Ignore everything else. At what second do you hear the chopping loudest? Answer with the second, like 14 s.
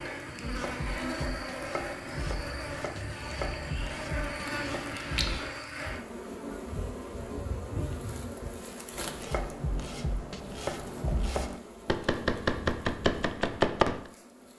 14 s.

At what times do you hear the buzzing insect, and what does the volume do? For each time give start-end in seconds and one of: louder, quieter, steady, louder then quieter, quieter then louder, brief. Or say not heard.
0.0-14.5 quieter.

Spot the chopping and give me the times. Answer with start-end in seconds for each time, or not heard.
0.3-5.5, 8.9-14.0.